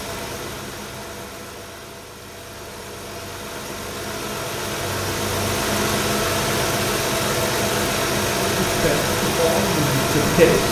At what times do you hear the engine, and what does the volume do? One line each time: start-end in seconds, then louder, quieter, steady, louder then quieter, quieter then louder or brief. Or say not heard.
0.0-10.6 louder.